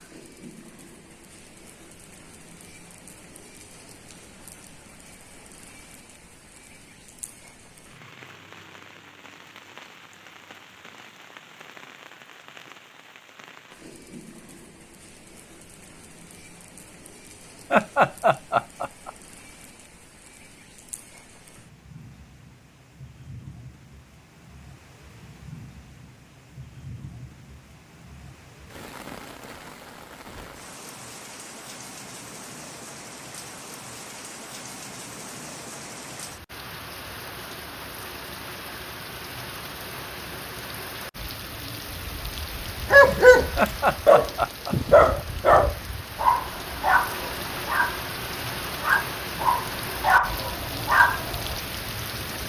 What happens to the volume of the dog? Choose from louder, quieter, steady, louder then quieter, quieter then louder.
quieter.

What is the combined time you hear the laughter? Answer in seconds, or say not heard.
3 s.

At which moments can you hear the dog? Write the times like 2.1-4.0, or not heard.
42.1-51.6.